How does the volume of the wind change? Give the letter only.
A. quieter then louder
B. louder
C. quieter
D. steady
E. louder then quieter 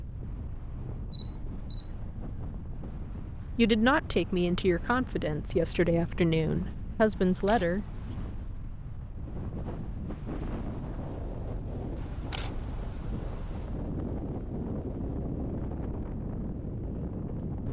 B.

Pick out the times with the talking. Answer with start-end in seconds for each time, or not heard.
3.5-7.8.